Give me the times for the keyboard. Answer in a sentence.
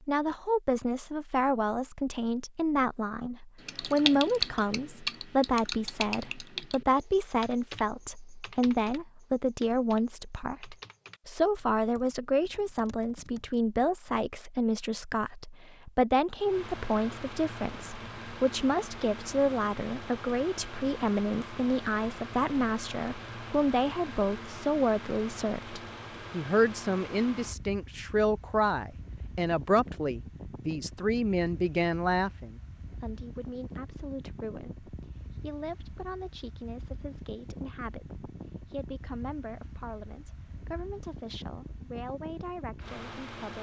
The keyboard can be heard from 3.6 to 13.8 s.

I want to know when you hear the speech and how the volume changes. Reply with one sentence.
The speech can be heard from 0.1 to 43.5 s, getting quieter.